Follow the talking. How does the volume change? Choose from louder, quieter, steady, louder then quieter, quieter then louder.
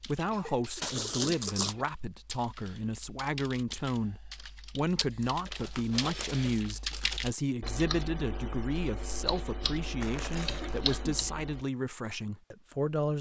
steady.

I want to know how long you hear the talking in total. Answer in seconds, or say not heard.
13 s.